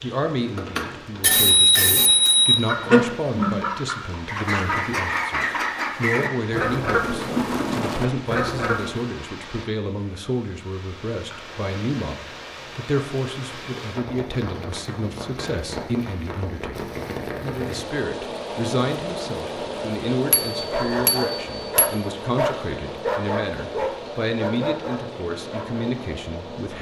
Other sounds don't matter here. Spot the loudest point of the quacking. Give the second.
3 s.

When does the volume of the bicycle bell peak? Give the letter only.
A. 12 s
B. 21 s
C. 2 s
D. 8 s
C.